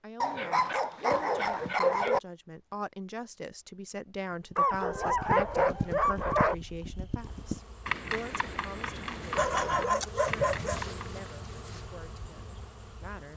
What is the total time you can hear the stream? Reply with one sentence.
You can't hear the stream here.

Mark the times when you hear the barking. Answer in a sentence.
You can hear the barking from 0.2 to 2.2 s, from 4.5 to 6.5 s and from 9.3 to 10.9 s.